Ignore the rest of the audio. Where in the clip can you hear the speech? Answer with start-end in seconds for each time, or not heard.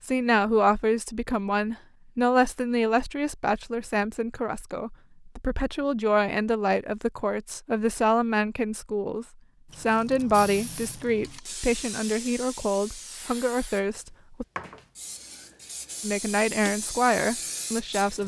0.0-14.4, 16.0-18.2.